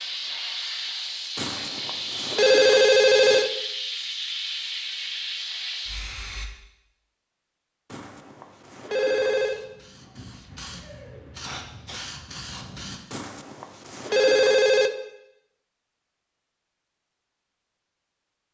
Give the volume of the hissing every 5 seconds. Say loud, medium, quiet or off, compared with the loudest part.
loud, loud, medium, off.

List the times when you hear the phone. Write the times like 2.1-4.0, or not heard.
1.4-3.5, 7.9-9.6, 13.1-14.9.